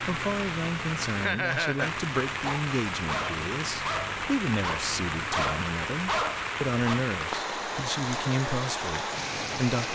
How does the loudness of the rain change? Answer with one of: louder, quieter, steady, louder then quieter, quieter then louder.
steady.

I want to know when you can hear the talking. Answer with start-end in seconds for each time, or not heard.
0.1-9.9.